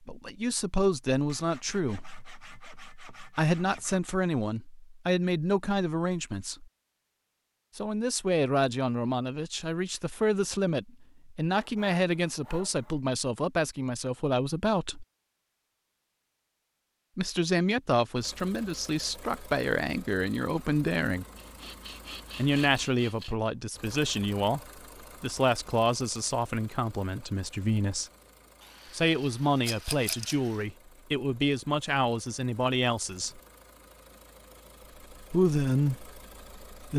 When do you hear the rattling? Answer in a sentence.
You can hear the rattling from 29.6 to 30.4 s.